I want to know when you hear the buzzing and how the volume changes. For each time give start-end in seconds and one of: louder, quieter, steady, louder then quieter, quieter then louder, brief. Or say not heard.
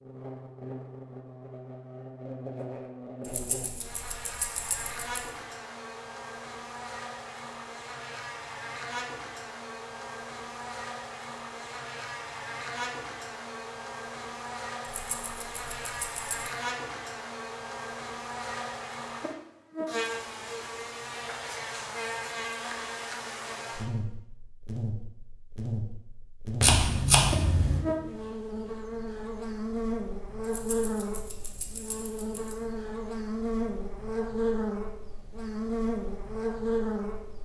0.0-37.3 louder.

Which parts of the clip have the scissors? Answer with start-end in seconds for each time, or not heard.
26.6-27.9.